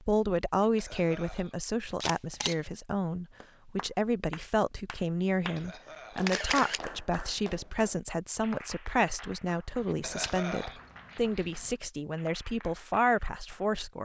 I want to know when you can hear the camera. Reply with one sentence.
You can hear the camera from 2.0 to 2.5 s, from 6.2 to 6.8 s and from 9.9 to 11.7 s.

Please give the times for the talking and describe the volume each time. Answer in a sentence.
The talking can be heard from 0.0 to 14.0 s, at a steady volume.